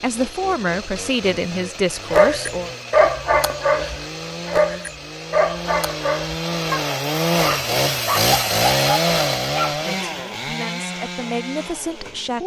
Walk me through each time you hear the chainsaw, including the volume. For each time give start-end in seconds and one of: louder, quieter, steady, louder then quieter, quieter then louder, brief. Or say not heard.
0.0-12.4 louder then quieter.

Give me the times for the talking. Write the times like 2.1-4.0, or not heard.
0.0-2.7, 9.7-12.4.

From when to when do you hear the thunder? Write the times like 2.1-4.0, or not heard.
not heard.